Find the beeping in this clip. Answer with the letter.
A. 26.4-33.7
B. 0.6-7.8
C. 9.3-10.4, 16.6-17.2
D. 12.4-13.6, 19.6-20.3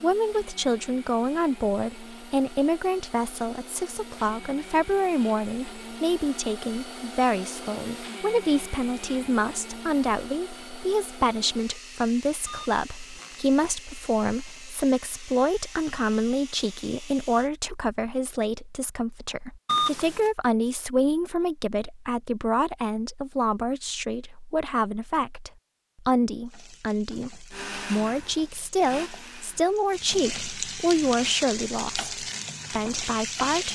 D.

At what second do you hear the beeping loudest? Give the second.
20 s.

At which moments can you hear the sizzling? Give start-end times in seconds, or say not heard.
26.4-33.7.